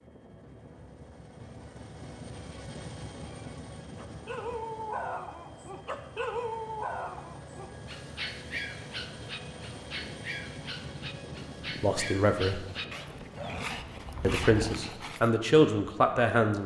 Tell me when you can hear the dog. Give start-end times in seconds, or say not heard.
4.0-15.3.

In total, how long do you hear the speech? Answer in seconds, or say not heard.
3 s.